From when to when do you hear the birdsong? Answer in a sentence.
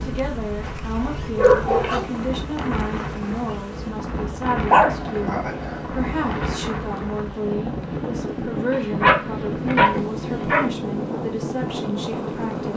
You can't hear the birdsong here.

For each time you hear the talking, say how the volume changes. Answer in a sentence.
You can hear the talking from 0.0 to 12.7 s, at a steady volume.